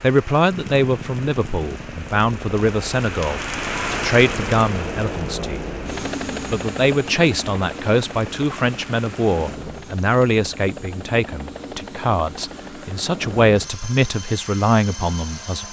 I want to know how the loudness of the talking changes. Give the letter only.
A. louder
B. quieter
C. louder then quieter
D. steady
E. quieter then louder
D.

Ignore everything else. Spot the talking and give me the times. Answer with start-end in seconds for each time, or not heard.
0.0-5.6, 6.5-15.6.